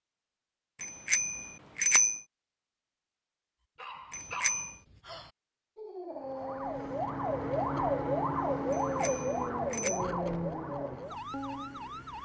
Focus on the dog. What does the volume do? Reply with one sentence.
The loudness of the dog goes up.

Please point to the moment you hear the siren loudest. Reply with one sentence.
The loudest moment of the siren is at 8 seconds.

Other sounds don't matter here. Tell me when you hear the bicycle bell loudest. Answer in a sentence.
The volume of the bicycle bell peaks at 2 seconds.